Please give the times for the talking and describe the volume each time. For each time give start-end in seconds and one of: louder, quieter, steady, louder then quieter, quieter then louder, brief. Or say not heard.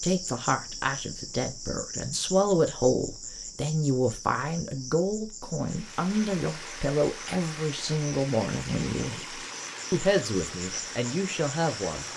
0.0-12.1 steady.